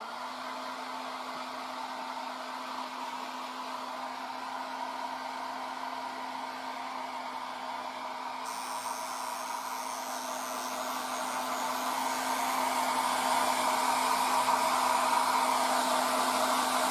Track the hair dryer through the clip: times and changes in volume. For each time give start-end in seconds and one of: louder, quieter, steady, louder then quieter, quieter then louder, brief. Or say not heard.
0.0-16.8 louder.